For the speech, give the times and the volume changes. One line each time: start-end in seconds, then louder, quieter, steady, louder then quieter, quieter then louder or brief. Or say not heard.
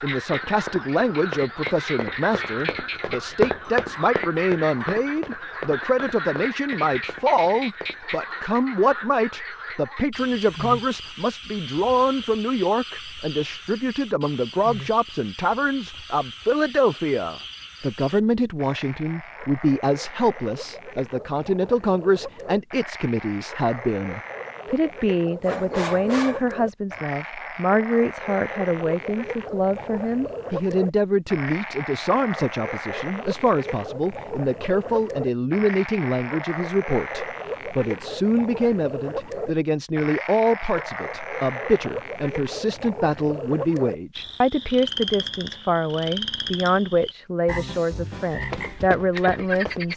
0.0-49.9 steady.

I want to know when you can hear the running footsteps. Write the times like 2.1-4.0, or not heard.
0.2-8.0, 48.2-49.9.